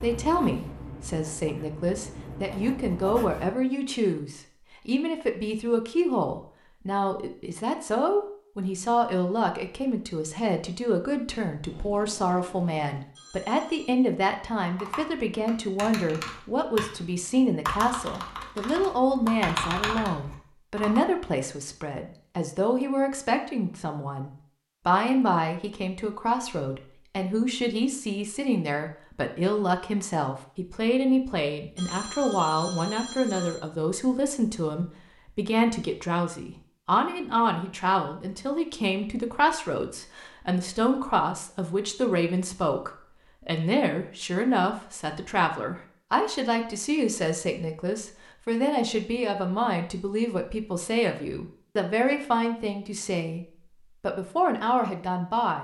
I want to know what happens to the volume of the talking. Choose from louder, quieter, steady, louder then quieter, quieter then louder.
steady.